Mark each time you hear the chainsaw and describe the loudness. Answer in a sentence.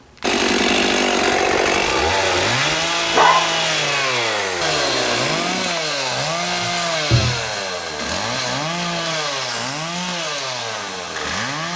The chainsaw can be heard from 0.2 to 11.7 s, getting quieter.